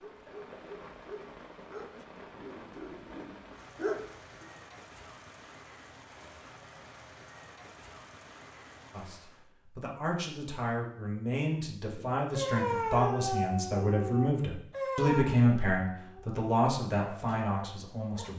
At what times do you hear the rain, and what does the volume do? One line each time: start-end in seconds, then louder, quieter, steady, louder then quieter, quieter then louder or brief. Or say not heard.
0.0-9.5 steady.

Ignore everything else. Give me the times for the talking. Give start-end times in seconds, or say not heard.
8.9-18.3.